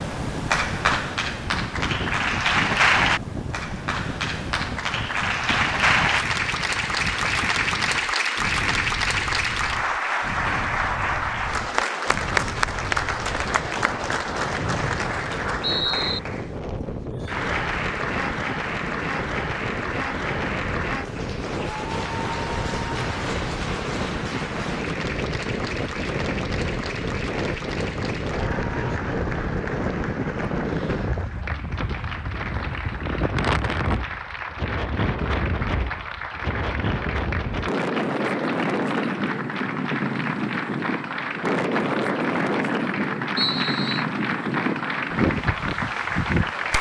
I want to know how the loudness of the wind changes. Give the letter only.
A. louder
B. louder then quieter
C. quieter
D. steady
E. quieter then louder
A.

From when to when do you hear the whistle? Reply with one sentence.
You can hear the whistle from 14.6 to 16.2 s and from 43.4 to 44.0 s.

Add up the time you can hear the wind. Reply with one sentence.
The wind can be heard for 47 seconds in total.